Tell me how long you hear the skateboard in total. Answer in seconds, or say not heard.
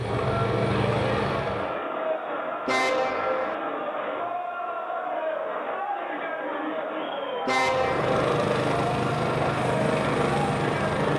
not heard.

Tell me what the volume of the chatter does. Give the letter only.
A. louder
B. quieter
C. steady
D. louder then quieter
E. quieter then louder
C.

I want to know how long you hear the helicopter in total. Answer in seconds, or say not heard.
5 s.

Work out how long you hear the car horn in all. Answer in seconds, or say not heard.
2 s.